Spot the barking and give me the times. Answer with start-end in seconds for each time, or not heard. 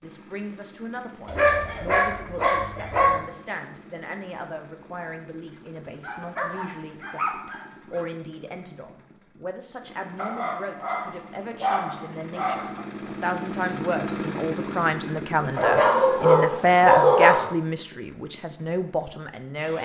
1.2-3.2, 6.0-8.1, 10.2-12.8, 15.6-17.5.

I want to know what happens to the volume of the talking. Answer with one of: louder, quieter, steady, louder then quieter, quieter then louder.
louder.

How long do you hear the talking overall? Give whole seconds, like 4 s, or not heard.
20 s.